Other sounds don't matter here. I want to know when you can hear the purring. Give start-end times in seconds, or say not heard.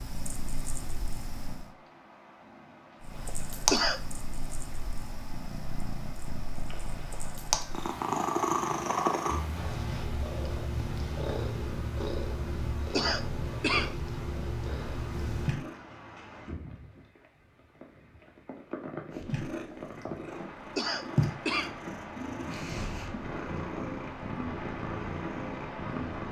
0.0-1.7, 3.0-15.8, 19.1-26.2.